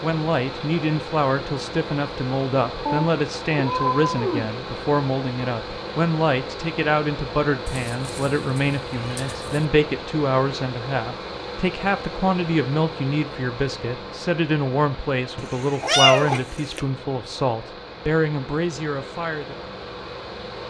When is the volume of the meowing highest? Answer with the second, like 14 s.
16 s.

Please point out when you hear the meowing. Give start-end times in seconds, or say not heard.
2.9-4.5, 7.7-9.7, 15.3-16.8.